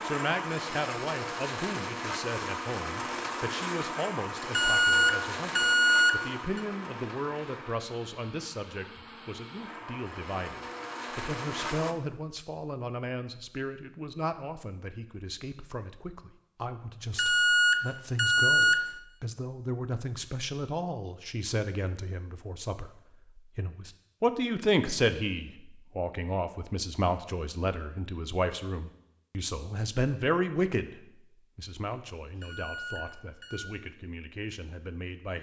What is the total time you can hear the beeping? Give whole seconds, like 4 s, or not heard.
5 s.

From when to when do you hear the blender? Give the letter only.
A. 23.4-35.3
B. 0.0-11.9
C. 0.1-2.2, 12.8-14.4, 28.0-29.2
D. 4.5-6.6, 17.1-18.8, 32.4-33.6
B.